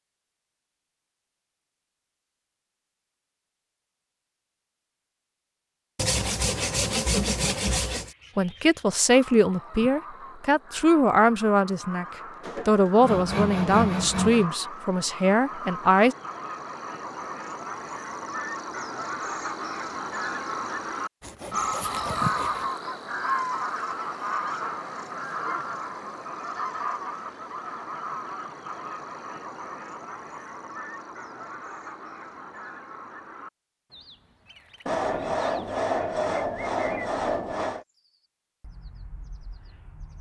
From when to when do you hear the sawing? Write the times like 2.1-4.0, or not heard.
6.0-8.2, 12.4-14.5, 21.2-22.8, 34.9-37.9.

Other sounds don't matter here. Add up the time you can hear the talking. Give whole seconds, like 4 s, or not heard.
8 s.